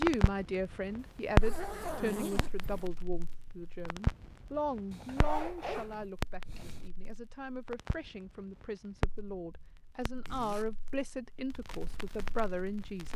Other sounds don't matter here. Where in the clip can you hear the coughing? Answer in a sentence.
The coughing can't be heard in this clip.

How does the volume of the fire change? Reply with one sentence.
The volume of the fire goes down.